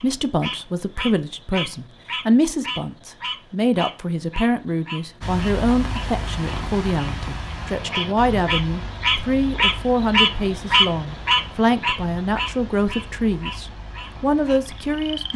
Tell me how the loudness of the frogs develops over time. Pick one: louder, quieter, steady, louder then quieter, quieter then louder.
louder then quieter.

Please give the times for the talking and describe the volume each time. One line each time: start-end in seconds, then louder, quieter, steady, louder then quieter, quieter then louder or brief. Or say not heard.
0.0-15.3 steady.